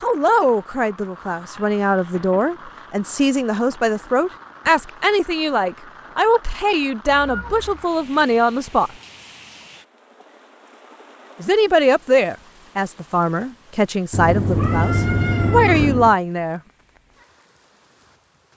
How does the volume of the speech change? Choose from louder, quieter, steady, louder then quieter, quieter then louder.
steady.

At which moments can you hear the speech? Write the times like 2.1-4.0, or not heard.
0.0-8.9, 11.4-16.6.